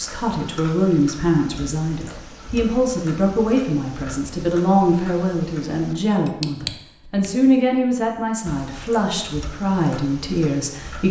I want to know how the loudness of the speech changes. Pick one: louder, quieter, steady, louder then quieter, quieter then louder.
steady.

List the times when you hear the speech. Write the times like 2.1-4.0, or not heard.
0.0-11.0.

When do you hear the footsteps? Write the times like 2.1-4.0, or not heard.
not heard.